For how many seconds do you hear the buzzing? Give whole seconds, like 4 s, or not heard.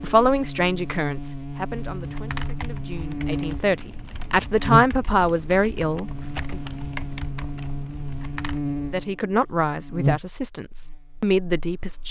12 s.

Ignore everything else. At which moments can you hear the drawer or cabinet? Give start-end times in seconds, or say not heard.
not heard.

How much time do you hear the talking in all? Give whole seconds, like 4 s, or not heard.
10 s.